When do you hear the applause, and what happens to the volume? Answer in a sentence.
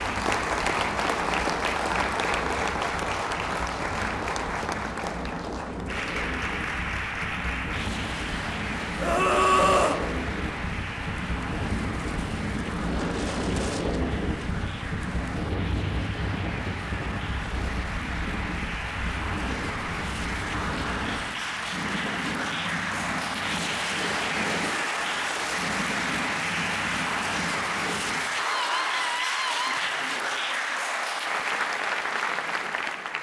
You can hear the applause from 0.0 to 33.1 s, getting quieter then louder.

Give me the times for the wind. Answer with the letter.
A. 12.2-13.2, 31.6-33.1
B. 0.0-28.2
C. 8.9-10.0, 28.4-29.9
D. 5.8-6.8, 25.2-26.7
B.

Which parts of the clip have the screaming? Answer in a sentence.
The screaming can be heard from 8.9 to 10.0 s and from 28.4 to 29.9 s.